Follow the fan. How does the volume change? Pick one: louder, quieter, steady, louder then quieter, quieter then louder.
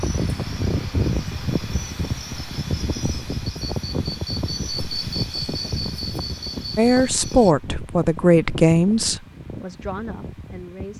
quieter.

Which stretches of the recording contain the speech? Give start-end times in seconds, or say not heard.
6.8-10.9.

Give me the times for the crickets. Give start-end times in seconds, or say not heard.
0.0-7.5.